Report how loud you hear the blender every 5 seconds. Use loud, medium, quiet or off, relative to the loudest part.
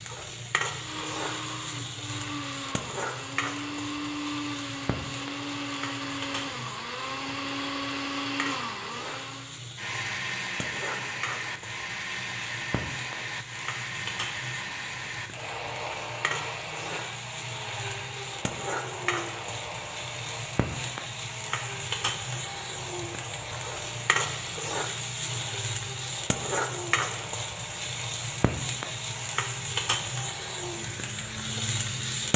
loud, loud, loud, loud, medium, medium, medium.